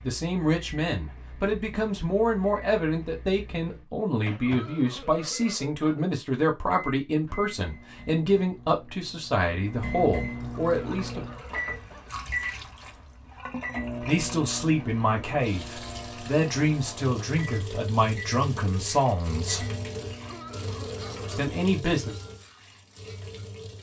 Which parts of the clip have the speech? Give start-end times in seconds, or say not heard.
0.0-11.2, 14.0-19.6, 21.2-22.2.